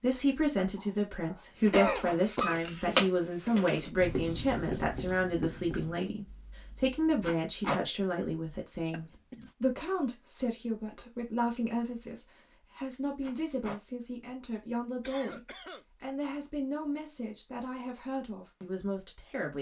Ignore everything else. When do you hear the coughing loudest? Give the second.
2 s.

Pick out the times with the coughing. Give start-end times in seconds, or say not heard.
0.8-2.6, 8.9-9.5, 15.0-15.8.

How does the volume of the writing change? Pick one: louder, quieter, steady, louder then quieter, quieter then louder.
louder then quieter.